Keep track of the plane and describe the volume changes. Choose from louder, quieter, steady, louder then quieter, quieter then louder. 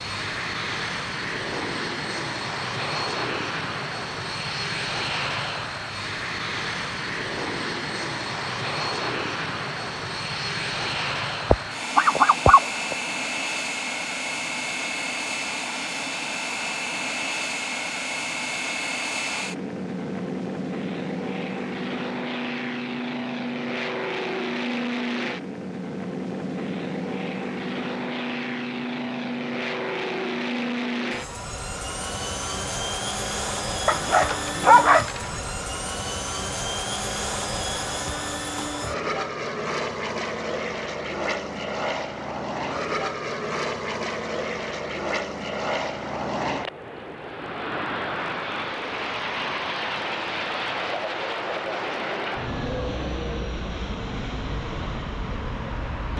steady.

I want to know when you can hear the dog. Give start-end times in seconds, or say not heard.
11.5-12.9, 33.9-35.5.